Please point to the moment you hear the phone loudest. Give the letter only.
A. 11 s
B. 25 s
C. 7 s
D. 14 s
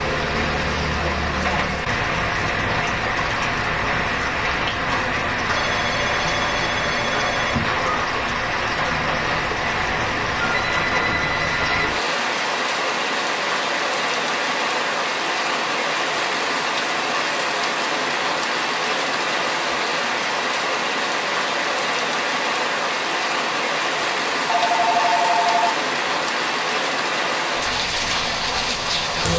B.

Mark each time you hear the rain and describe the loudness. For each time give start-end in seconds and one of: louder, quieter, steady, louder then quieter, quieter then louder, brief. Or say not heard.
0.0-29.3 steady.